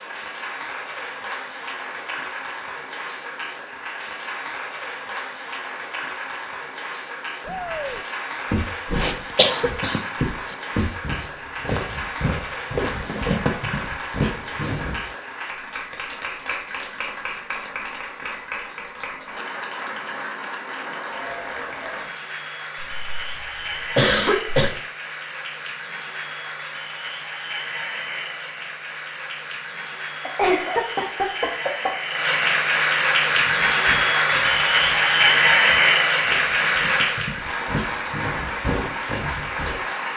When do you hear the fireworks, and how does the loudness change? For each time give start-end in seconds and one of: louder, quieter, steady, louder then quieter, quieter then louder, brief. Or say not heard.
not heard.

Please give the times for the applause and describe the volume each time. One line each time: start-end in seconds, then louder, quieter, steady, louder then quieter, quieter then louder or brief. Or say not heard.
0.0-40.1 louder.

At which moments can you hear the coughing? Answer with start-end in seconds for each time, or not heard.
9.0-10.0, 22.8-24.7, 30.2-31.9.